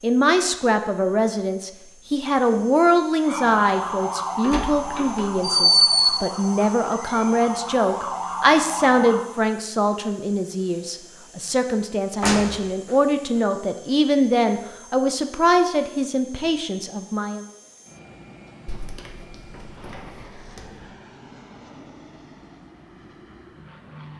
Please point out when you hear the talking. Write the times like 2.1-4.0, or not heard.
0.0-17.4.